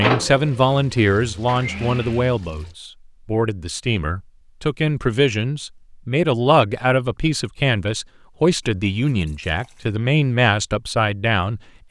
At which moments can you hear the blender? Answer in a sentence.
You can hear the blender from 0.0 to 2.4 s.